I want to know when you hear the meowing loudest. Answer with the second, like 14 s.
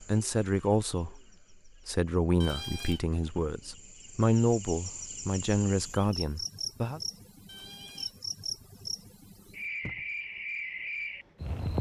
3 s.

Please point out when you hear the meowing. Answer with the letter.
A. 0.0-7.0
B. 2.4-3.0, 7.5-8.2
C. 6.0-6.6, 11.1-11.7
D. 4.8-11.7
B.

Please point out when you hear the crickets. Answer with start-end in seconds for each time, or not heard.
0.0-11.7.